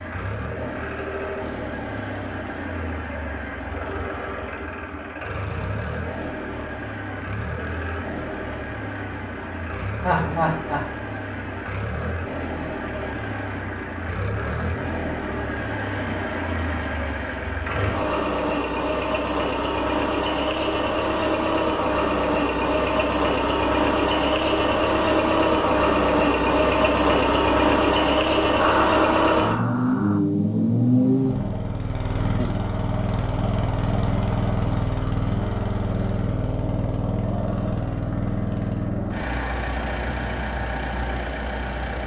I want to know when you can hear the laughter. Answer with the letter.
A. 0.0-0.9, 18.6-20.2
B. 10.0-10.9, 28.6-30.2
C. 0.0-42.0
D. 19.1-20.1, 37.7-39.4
B.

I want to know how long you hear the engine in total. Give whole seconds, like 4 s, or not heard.
42 s.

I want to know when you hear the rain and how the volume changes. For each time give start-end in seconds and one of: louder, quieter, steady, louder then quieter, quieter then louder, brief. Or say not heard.
not heard.